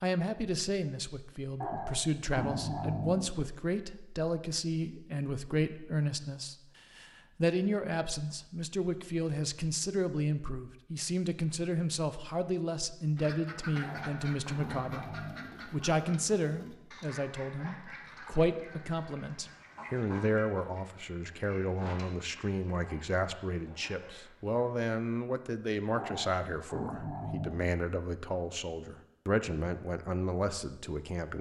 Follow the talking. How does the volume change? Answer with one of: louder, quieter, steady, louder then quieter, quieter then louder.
steady.